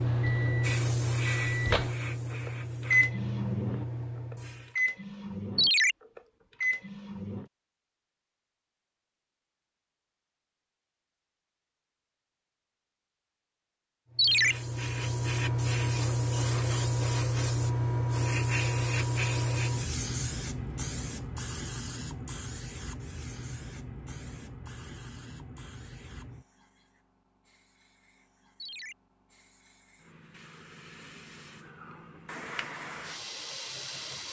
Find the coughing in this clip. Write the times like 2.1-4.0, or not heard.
not heard.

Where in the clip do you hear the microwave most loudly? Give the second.
3 s.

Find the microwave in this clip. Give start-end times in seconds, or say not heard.
0.0-7.5.